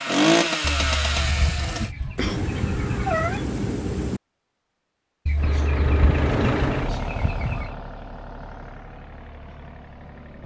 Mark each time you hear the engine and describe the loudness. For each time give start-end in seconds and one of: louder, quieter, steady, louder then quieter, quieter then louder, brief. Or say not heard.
0.0-1.9 brief
5.3-10.4 quieter.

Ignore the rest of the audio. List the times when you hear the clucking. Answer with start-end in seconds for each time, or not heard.
0.6-3.0, 5.2-7.7.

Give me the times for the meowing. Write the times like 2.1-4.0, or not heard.
2.1-4.2.